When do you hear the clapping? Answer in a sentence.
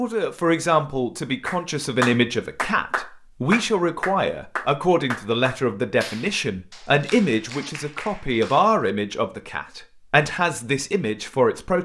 You can hear the clapping from 1.4 to 8.8 s.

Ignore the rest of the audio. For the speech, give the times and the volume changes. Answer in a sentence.
The speech can be heard from 0.0 to 11.8 s, at a steady volume.